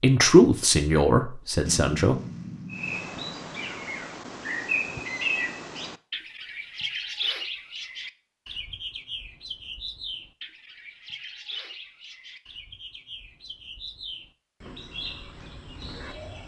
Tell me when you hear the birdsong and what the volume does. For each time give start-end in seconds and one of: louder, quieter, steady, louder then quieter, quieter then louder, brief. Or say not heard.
2.7-16.4 quieter.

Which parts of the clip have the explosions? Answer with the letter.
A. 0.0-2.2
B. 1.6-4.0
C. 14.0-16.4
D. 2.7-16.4
B.